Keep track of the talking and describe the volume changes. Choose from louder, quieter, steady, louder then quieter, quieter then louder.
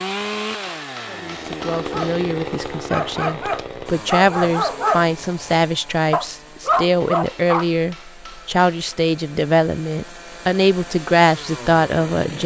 louder.